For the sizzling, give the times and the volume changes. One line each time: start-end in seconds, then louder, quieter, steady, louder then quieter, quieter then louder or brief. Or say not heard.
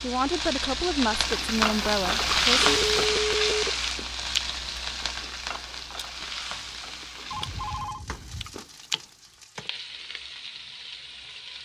0.0-11.6 quieter.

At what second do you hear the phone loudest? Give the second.
3 s.